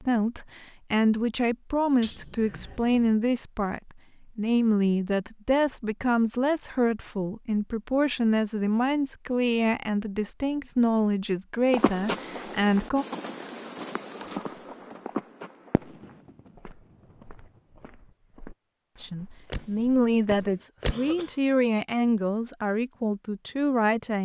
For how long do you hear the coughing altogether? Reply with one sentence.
The coughing can be heard for 2 seconds in total.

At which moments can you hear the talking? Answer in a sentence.
The talking can be heard from 0.0 to 13.1 s and from 19.0 to 24.2 s.